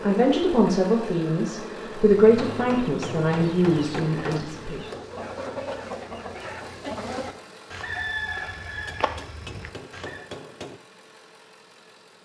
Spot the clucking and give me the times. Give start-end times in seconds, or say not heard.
1.9-10.2.